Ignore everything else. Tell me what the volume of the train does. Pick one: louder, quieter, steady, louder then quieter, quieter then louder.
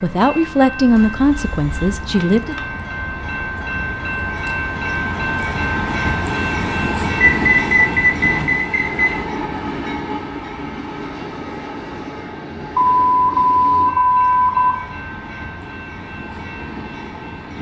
louder then quieter.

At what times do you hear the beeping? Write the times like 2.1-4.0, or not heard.
0.8-2.0, 7.2-9.2, 12.8-14.8.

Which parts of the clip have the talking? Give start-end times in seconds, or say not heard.
0.0-2.5.